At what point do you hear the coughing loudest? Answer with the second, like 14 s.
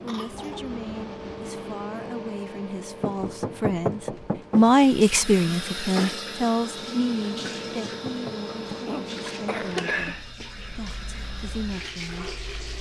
10 s.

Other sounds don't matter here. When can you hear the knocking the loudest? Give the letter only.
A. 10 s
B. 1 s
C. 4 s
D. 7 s
C.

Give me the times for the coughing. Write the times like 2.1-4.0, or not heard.
0.1-0.7, 8.8-10.4.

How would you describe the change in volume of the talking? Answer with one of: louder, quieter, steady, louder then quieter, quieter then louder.
louder then quieter.